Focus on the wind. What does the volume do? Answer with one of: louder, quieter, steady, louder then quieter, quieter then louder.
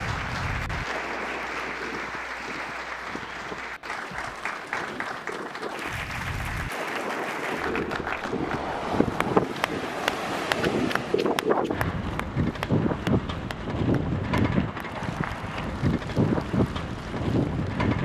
louder.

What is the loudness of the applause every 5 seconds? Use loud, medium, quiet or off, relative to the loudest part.
loud, loud, loud, quiet.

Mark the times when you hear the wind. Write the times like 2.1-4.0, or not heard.
0.0-18.0.